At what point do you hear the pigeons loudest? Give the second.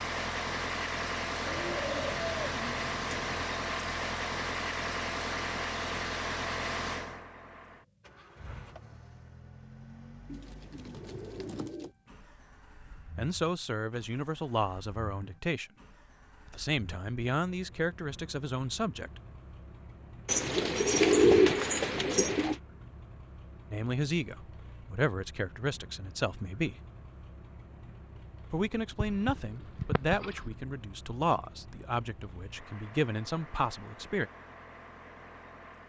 21 s.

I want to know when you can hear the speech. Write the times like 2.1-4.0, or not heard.
13.2-15.7, 16.4-19.2, 23.7-26.8, 28.5-34.3.